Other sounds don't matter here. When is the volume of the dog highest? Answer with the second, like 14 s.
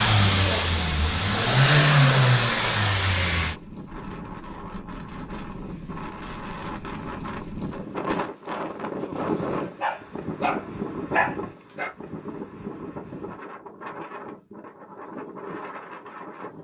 11 s.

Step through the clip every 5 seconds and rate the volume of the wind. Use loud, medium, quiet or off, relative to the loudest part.
medium, loud, loud, medium.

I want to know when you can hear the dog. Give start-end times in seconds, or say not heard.
9.2-11.9.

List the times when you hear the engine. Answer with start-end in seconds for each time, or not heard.
0.0-3.5.